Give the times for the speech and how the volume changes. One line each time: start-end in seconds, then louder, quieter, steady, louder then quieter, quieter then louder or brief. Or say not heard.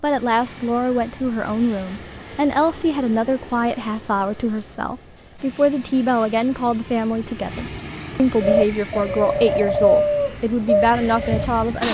0.0-11.8 steady.